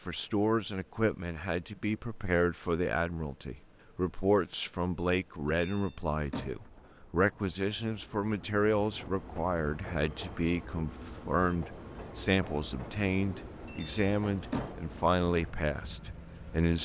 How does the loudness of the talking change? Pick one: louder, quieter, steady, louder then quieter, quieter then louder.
steady.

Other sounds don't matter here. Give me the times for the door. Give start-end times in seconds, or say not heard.
5.5-6.8, 13.7-14.8.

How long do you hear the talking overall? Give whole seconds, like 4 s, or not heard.
17 s.